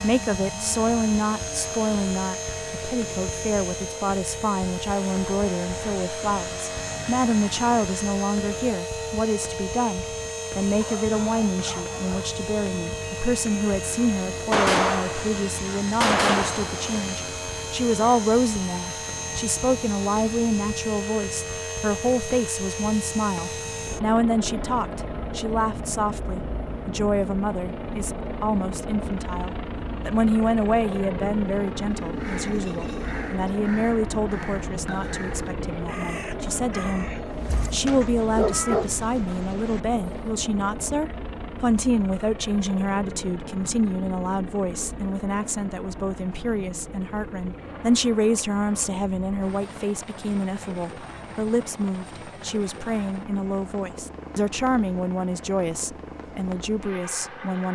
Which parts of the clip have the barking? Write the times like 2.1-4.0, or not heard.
10.8-12.3, 37.3-38.9.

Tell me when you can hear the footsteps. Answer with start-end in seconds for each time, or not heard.
not heard.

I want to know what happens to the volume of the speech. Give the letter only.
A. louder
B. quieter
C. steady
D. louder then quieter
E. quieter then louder
C.